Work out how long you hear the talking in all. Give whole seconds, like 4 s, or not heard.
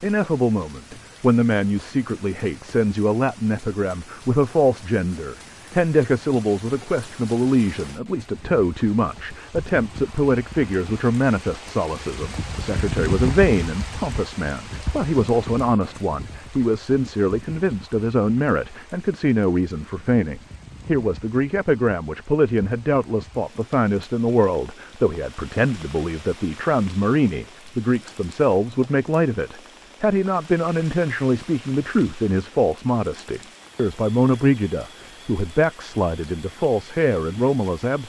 38 s.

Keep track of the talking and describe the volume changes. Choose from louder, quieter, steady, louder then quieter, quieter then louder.
steady.